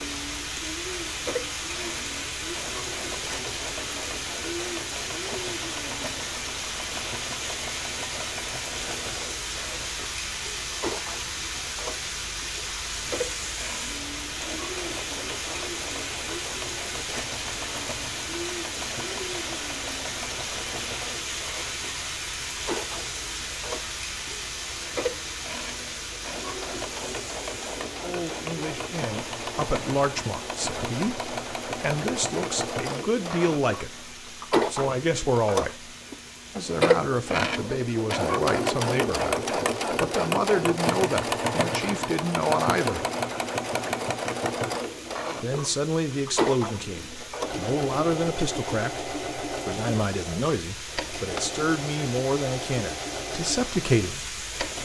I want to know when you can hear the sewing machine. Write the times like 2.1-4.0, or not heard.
0.0-54.8.